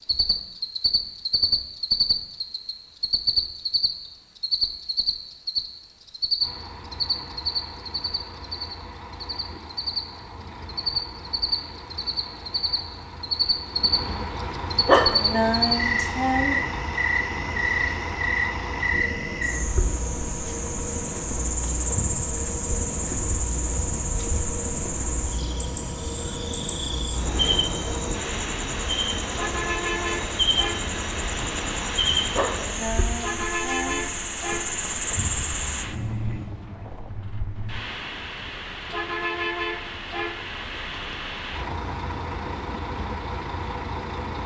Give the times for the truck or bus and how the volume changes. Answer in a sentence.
You can hear the truck or bus from 6.3 to 44.4 s, getting louder.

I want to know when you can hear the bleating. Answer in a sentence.
The bleating can't be heard in this clip.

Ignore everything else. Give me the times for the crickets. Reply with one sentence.
The crickets can be heard from 0.0 to 35.9 s.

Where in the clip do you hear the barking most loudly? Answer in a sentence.
The loudest moment of the barking is at 15 seconds.